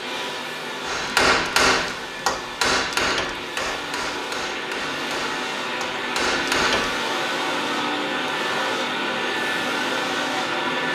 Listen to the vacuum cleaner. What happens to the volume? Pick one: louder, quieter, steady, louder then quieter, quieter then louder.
louder.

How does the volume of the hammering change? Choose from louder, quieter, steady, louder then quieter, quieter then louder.
quieter then louder.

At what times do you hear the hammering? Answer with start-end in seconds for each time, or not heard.
0.8-7.0.